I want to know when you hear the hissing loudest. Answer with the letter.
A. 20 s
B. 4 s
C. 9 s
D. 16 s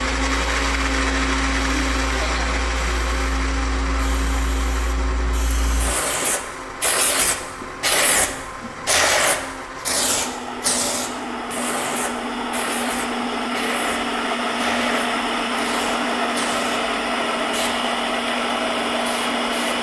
C.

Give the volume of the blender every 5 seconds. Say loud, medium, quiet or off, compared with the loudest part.
loud, medium, loud, loud.